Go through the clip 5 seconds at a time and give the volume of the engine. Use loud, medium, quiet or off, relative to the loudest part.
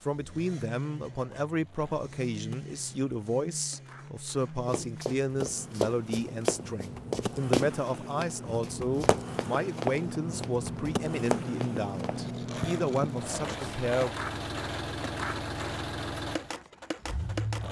medium, medium, loud, loud.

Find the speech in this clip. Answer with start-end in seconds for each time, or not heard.
0.0-14.2.